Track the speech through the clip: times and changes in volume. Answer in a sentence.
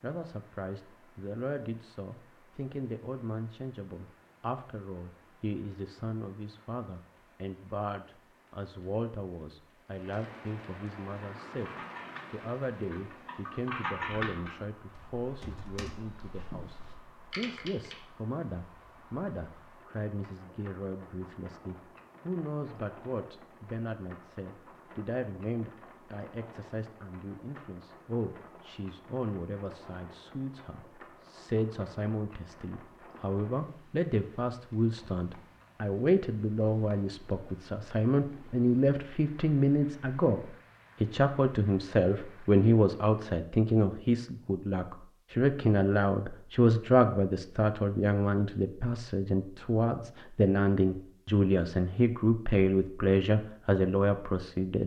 The speech can be heard from 0.0 to 54.8 s, getting louder.